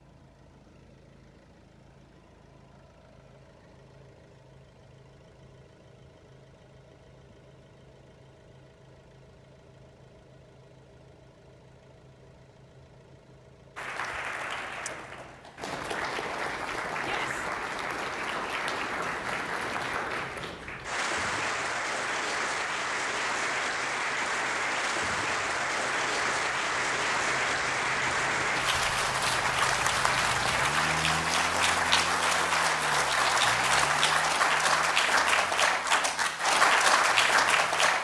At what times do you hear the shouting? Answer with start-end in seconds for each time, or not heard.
17.0-17.4.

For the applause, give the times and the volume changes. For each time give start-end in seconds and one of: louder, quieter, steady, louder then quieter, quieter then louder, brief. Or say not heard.
13.8-37.9 louder.